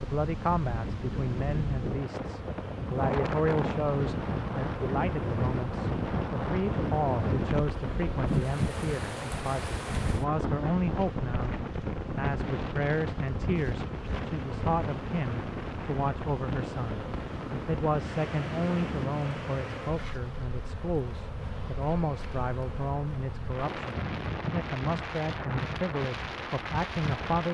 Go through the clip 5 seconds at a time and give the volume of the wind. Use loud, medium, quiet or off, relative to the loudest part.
loud, loud, loud, medium, medium, medium.